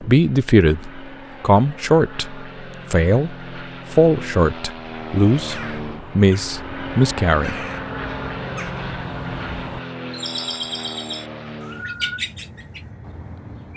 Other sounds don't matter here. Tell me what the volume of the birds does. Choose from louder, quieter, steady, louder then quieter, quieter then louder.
louder.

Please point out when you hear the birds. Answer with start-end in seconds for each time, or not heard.
5.3-13.7.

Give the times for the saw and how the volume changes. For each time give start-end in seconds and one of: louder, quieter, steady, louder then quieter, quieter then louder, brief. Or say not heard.
not heard.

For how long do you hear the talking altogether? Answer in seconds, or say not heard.
8 s.